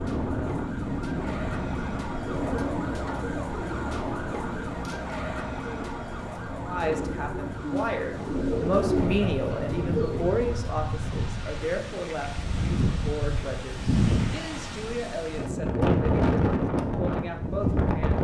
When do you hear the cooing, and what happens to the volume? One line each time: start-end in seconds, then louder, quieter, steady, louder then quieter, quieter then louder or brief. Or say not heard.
2.2-10.3 quieter then louder.